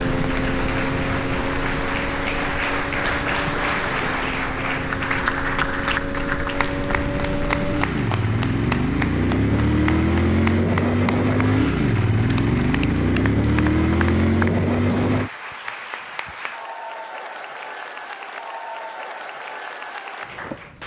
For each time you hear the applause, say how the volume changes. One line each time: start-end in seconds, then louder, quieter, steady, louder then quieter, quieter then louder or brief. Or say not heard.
0.0-20.8 quieter.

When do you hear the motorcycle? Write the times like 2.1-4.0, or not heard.
0.0-15.3.